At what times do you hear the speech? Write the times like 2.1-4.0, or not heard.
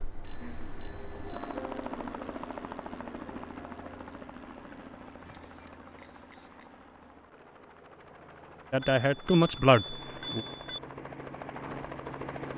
8.7-10.4.